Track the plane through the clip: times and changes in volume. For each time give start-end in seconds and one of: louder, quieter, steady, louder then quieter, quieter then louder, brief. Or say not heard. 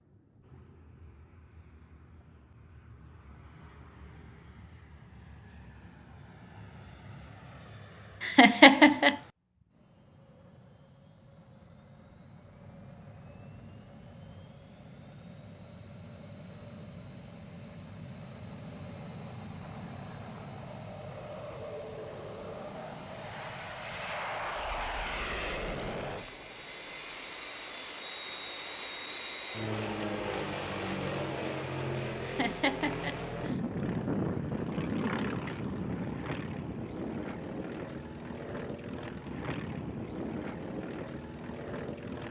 0.0-42.2 louder.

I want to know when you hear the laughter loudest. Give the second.
9 s.